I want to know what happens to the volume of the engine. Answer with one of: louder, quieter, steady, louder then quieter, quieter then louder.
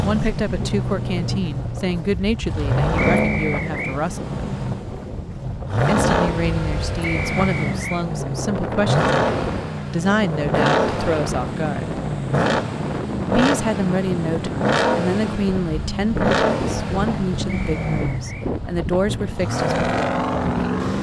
steady.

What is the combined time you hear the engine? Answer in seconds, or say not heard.
21 s.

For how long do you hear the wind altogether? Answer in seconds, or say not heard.
21 s.